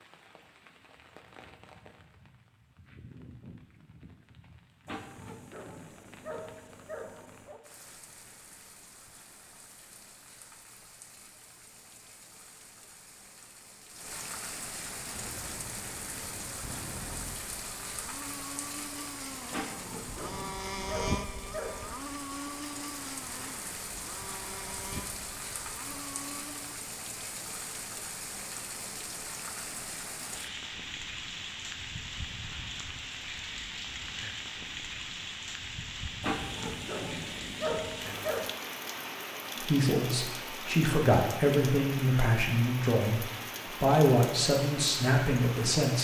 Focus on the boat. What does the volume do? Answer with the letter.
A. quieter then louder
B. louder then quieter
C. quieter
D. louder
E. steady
B.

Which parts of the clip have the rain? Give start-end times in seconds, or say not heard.
0.0-45.9.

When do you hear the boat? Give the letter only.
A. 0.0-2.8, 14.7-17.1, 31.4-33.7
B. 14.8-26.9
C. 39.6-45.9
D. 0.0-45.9
B.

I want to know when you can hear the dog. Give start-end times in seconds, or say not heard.
4.8-7.6, 19.5-22.0, 36.2-38.5.